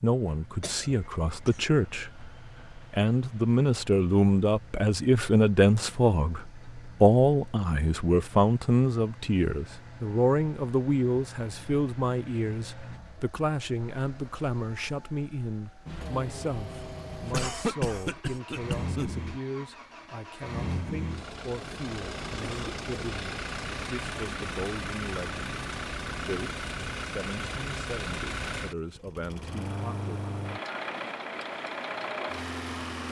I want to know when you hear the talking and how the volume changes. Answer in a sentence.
You can hear the talking from 0.0 to 30.1 s, getting quieter.